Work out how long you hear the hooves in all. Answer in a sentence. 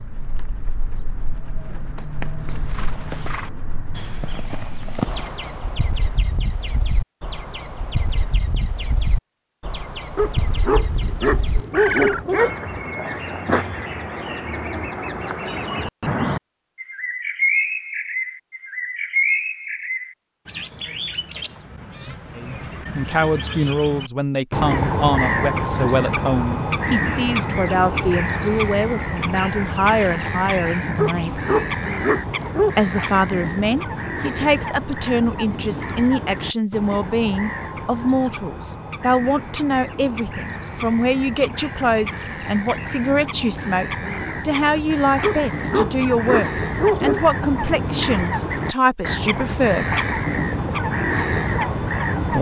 The hooves can be heard for 3 seconds in total.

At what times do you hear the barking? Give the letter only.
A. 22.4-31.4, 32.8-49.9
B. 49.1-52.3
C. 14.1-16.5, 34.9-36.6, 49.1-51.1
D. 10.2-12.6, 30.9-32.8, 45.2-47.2
D.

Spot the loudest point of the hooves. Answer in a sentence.
The volume of the hooves peaks at 5 seconds.